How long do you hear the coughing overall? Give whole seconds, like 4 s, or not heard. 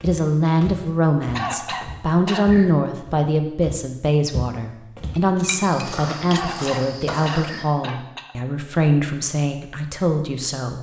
4 s.